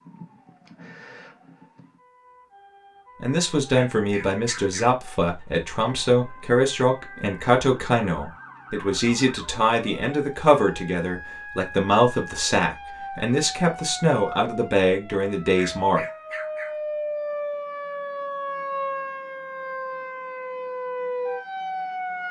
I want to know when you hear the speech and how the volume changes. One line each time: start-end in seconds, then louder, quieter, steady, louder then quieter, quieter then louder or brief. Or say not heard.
3.2-16.1 steady.